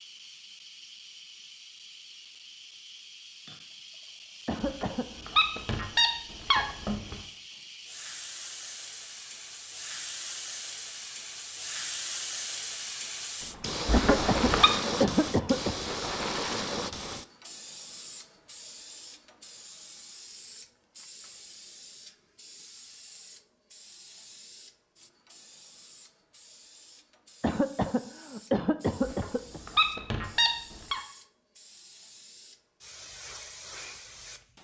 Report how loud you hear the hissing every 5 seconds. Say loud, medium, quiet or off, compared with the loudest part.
quiet, medium, loud, loud, quiet, quiet, quiet.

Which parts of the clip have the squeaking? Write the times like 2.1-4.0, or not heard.
4.6-7.2, 13.8-14.7, 29.0-31.0.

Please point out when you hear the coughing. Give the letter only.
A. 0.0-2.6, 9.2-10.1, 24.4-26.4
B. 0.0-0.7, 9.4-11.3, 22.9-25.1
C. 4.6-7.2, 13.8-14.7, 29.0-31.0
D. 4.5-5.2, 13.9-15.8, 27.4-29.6
D.